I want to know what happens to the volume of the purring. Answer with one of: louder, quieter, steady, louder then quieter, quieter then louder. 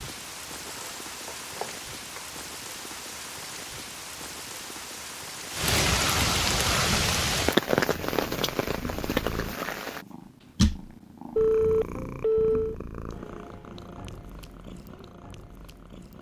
louder then quieter.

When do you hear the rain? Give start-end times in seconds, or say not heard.
0.0-10.1.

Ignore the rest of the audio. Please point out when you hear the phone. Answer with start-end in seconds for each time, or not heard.
0.7-2.2, 11.3-12.8.